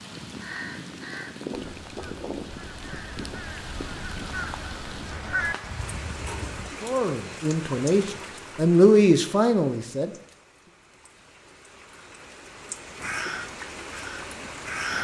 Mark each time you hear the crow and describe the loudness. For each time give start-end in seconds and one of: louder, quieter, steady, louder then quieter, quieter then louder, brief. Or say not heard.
0.3-6.8 louder
12.9-14.9 brief.